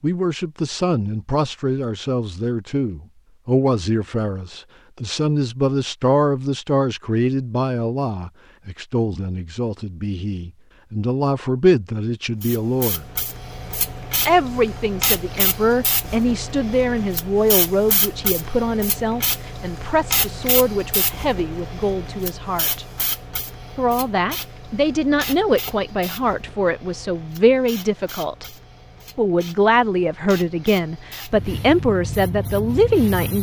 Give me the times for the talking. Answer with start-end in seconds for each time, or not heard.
0.0-13.1, 14.2-22.9, 23.8-28.4, 29.1-33.3.